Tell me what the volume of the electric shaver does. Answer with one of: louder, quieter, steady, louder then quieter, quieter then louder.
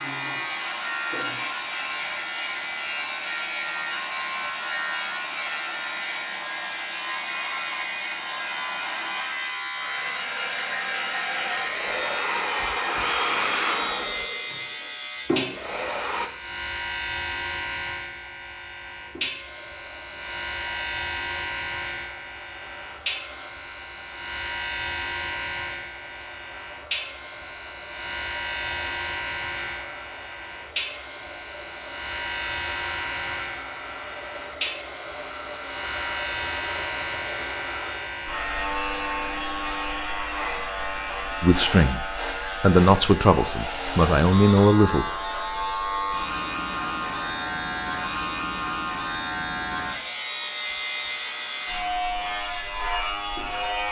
steady.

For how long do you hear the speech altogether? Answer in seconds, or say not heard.
4 s.